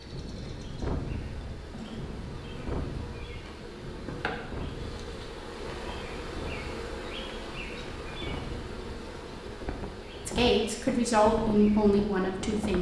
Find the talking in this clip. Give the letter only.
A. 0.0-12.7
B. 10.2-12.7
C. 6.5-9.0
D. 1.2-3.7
B.